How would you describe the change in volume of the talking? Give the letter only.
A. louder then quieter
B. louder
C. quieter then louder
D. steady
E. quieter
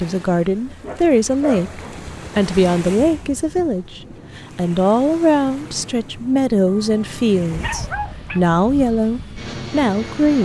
D.